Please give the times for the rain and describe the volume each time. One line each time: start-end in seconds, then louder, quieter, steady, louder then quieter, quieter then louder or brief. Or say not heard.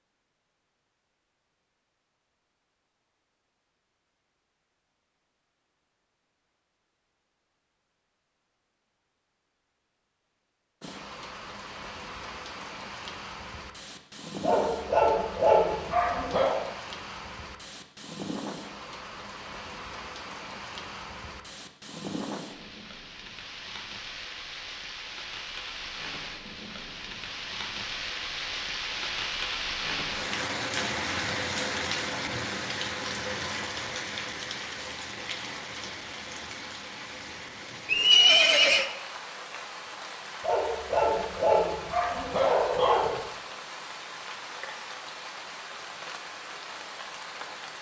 10.8-47.7 louder then quieter.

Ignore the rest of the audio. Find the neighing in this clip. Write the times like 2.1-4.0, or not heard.
37.9-38.9.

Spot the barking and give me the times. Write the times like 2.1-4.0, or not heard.
14.4-16.6, 40.4-43.1.